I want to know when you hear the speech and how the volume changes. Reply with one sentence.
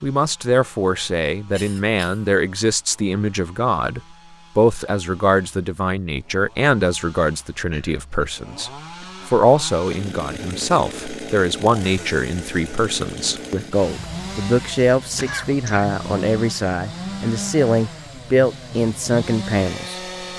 The speech can be heard from 0.0 to 20.3 s, at a steady volume.